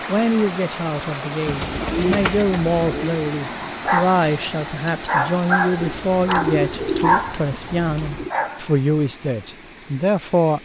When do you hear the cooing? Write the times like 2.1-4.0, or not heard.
1.4-3.2, 5.8-8.3.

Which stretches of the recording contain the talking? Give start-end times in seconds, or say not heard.
0.1-10.6.